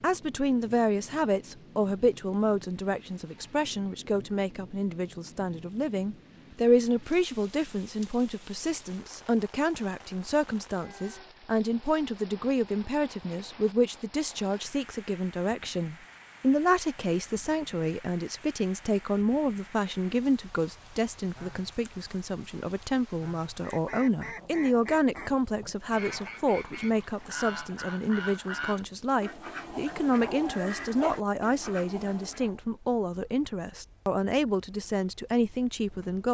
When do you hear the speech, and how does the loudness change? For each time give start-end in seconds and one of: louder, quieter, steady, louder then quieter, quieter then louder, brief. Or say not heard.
0.0-36.3 steady.